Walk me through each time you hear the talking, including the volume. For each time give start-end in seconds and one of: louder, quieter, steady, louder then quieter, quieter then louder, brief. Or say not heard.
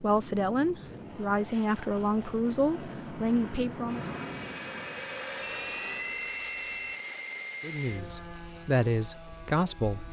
0.0-4.0 steady
7.6-10.0 brief.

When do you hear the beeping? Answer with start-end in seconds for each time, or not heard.
5.4-7.0.